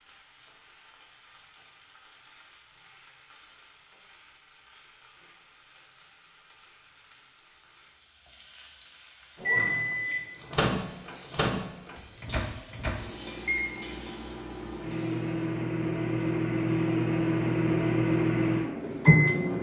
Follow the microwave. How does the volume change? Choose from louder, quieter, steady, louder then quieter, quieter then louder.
quieter then louder.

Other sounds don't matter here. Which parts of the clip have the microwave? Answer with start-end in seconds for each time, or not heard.
9.4-19.5.